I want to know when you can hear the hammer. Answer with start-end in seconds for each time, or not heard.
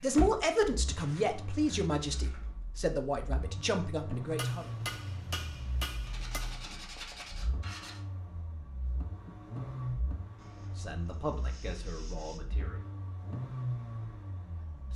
4.3-6.7.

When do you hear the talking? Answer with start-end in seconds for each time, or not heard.
0.0-4.7, 10.8-12.9.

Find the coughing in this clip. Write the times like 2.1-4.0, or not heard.
not heard.